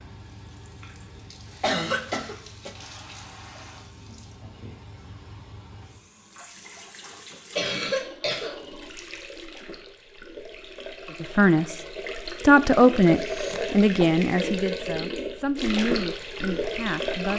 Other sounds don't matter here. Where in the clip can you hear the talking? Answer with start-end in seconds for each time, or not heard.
11.2-11.8, 12.4-17.3.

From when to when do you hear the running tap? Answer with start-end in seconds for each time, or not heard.
0.0-17.3.